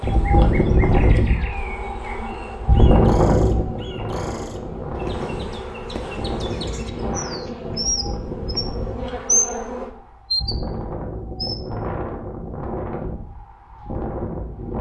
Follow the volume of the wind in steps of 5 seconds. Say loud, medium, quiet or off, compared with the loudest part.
loud, medium, medium.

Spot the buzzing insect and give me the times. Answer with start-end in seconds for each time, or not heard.
0.0-9.9.